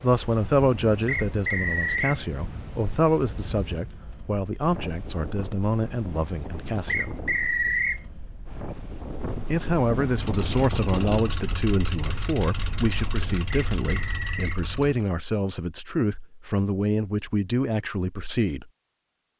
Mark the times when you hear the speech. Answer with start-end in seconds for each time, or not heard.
0.0-7.2, 9.4-18.7.